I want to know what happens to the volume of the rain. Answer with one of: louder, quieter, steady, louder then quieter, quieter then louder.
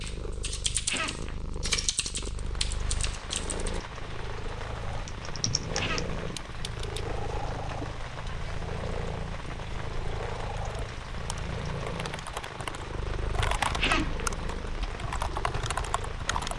steady.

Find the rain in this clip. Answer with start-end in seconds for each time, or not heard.
2.3-16.5.